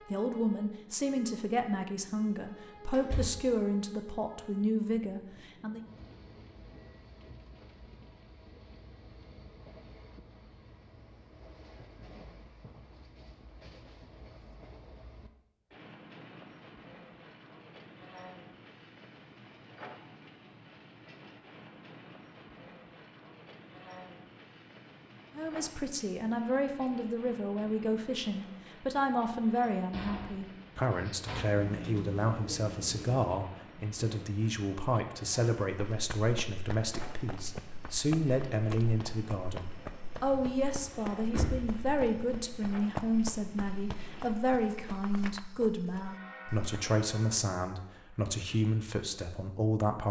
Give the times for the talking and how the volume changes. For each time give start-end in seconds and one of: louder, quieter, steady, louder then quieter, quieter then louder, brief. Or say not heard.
0.1-5.8 steady
25.4-50.0 steady.